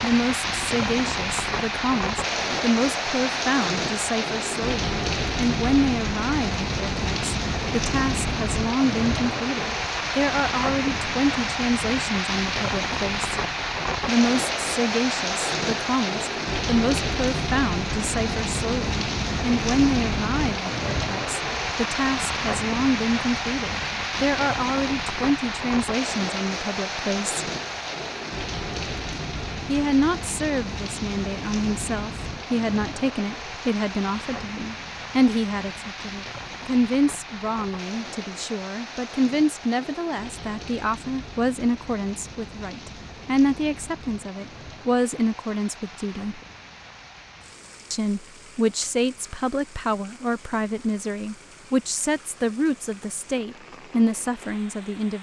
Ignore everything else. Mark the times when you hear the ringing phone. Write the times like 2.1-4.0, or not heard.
not heard.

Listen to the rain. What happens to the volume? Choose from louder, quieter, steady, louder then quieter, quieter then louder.
quieter.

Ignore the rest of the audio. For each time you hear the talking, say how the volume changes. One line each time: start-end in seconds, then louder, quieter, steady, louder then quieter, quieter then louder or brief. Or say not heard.
0.0-13.3 steady
14.1-27.4 steady
29.6-46.4 steady
47.9-55.1 steady.